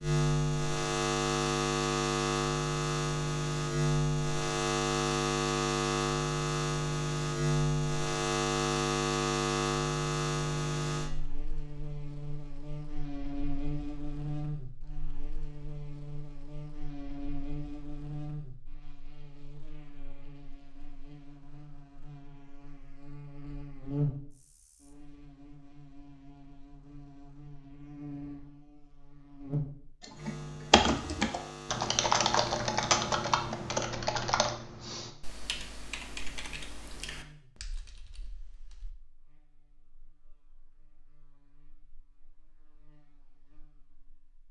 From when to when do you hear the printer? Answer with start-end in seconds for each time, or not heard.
not heard.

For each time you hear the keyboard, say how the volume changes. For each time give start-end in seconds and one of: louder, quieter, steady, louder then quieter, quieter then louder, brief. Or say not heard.
30.0-39.0 quieter.